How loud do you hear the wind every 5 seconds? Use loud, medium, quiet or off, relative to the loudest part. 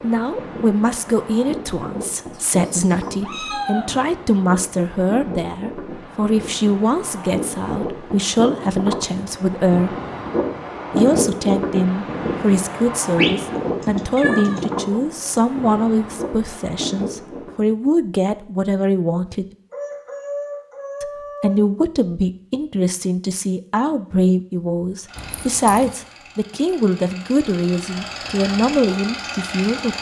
medium, medium, loud, medium, off, off.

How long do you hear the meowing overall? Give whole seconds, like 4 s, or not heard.
4 s.